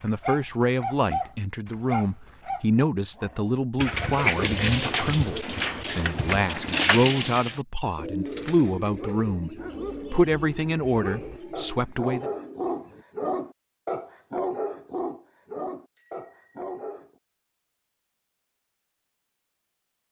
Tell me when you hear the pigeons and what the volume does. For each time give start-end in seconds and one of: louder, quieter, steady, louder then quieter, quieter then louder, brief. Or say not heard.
3.8-13.1 quieter.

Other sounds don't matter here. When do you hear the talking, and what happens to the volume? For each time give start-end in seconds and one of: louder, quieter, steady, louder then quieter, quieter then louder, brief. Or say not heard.
0.0-9.5 steady
10.1-12.3 brief.